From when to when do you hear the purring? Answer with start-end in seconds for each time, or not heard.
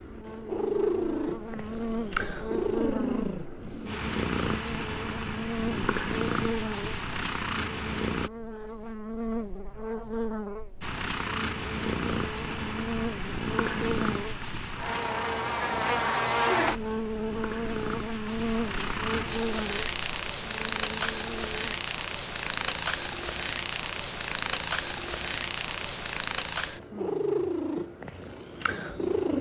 0.0-8.3, 10.8-29.3.